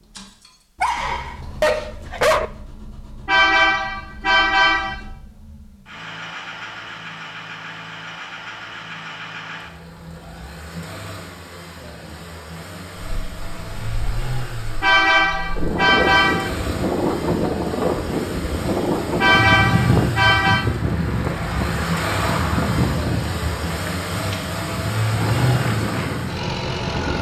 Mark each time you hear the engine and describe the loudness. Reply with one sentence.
You can hear the engine from 0.0 to 27.1 s, getting louder.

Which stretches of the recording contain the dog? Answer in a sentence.
You can hear the dog from 0.8 to 2.5 s.